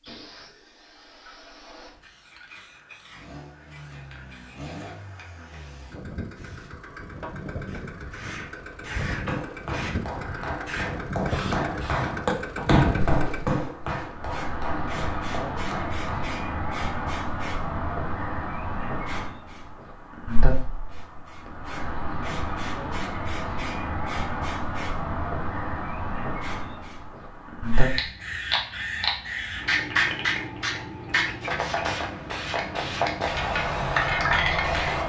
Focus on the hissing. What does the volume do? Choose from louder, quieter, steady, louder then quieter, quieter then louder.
louder.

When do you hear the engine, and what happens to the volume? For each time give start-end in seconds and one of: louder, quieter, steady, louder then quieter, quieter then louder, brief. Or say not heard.
3.1-13.5 louder.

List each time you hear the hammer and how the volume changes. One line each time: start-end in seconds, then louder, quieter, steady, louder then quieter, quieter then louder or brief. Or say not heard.
9.2-16.4 louder then quieter.